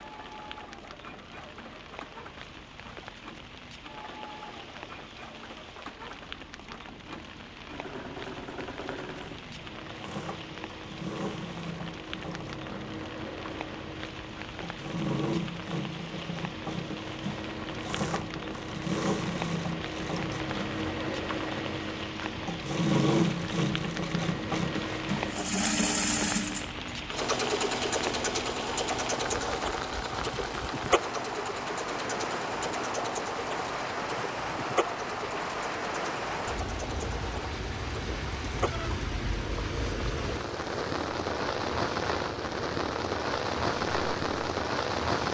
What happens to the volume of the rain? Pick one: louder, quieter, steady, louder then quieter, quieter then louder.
louder.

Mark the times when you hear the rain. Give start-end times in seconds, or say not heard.
0.0-45.3.